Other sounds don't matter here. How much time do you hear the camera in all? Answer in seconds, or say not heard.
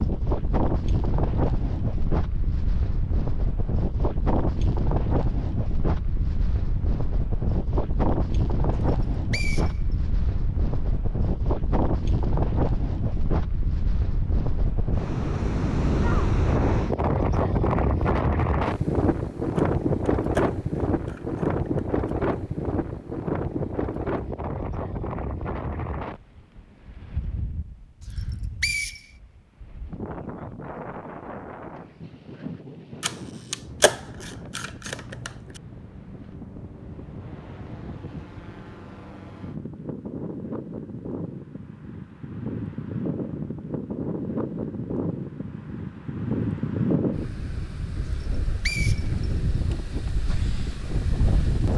5 s.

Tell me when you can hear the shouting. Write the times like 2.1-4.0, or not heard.
not heard.